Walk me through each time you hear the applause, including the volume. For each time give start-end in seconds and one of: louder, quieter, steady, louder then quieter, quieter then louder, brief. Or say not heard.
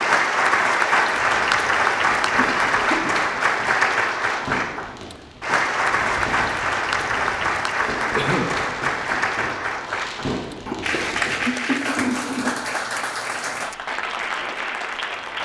0.0-15.4 quieter.